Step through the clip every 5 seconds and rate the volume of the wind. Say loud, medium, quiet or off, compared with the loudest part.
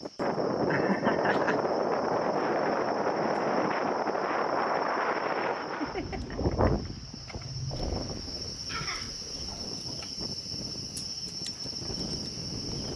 loud, medium, quiet.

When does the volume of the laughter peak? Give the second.
1 s.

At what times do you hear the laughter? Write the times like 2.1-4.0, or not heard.
0.7-1.6, 5.6-6.9, 8.7-9.2.